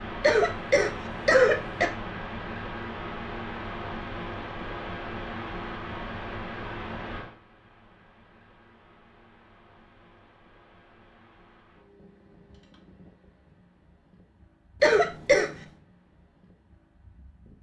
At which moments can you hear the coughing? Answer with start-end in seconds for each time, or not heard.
0.2-1.9, 14.8-15.5.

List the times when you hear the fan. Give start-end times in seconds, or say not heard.
0.0-17.5.